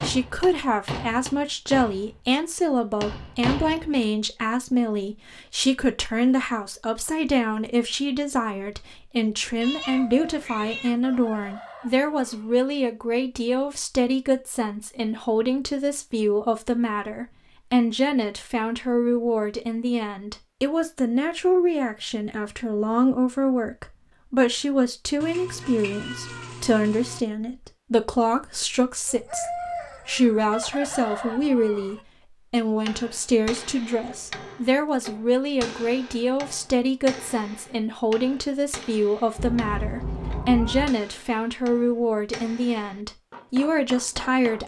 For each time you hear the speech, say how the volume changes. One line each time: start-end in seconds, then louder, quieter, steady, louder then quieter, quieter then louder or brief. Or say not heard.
0.0-44.6 steady.